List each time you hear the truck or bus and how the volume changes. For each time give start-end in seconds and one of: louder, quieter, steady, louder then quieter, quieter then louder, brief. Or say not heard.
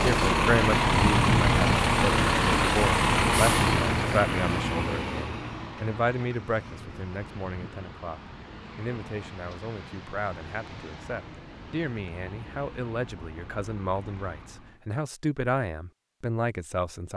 0.0-14.8 quieter.